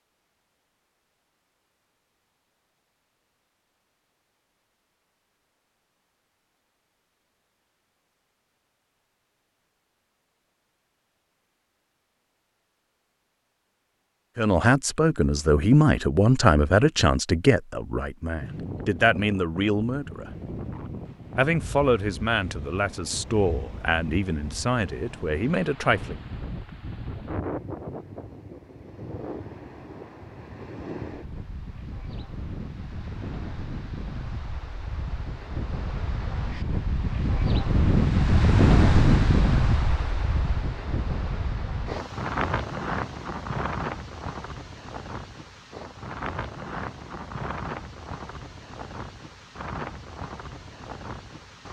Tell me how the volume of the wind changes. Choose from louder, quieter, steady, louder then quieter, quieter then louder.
louder then quieter.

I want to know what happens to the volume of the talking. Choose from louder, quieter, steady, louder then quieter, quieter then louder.
quieter.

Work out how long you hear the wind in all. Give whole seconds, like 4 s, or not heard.
33 s.